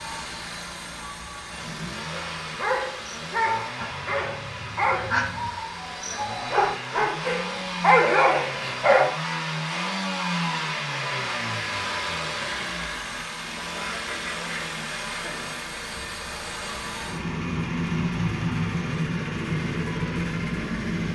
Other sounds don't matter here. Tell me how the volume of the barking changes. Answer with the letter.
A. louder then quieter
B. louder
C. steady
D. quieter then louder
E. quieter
D.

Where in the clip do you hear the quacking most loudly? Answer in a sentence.
The volume of the quacking peaks at 5 seconds.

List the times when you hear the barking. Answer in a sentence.
The barking can be heard from 2.1 to 9.1 s.